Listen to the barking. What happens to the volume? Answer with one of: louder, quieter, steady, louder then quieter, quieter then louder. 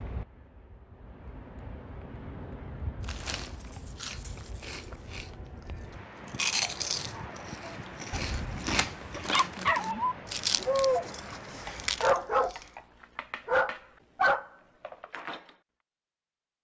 louder.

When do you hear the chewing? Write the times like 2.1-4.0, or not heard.
3.0-12.7.